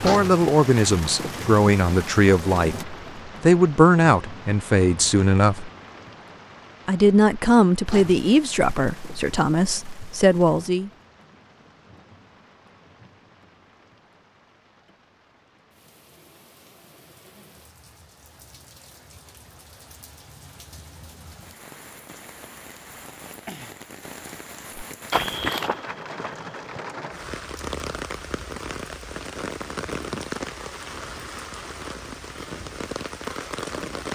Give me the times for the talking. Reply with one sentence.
You can hear the talking from 0.0 to 5.7 s and from 6.8 to 10.9 s.